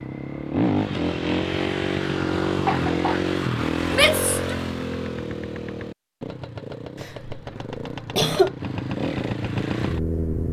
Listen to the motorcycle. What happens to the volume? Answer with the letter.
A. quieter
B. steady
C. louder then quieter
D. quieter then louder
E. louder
D.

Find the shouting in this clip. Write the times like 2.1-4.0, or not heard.
3.9-4.5.